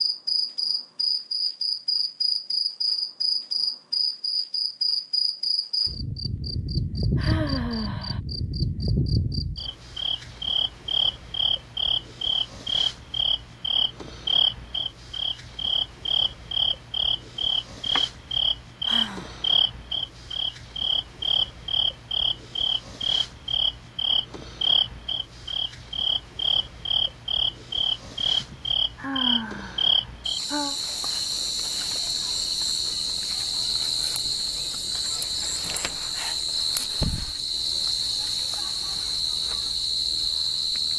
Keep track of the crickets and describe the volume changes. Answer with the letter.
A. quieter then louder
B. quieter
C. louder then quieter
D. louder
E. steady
E.